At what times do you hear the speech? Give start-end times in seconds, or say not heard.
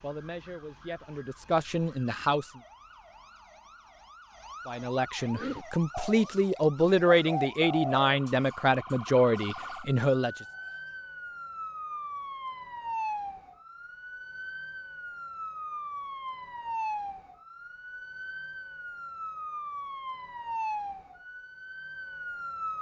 0.0-2.5, 4.7-10.3.